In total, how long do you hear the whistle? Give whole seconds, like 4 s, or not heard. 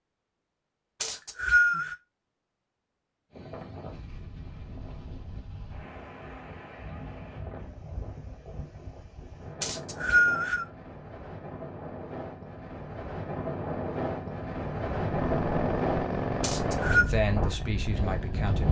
3 s.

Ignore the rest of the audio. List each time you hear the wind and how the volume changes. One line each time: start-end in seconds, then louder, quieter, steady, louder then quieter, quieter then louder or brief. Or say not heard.
3.3-18.6 louder.